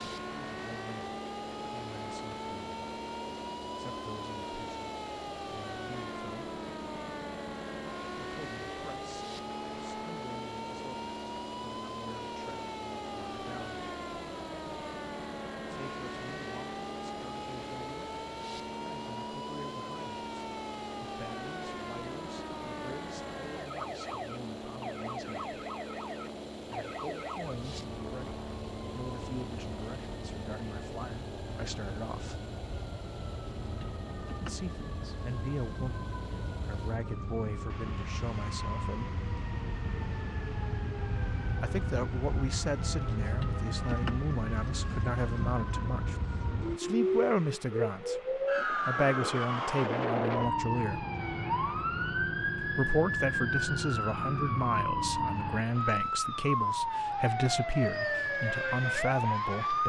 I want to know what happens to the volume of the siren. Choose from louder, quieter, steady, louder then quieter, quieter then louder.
louder.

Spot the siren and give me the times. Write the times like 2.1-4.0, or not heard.
0.0-59.8.